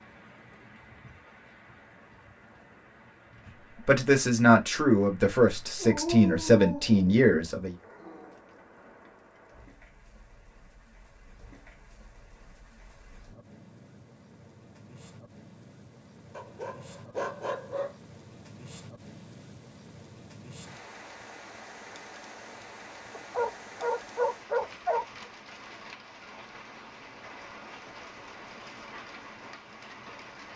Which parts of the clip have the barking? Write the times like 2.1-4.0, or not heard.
5.8-8.4, 16.4-17.9, 23.1-25.1.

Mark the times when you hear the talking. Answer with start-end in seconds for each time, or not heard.
3.9-7.8.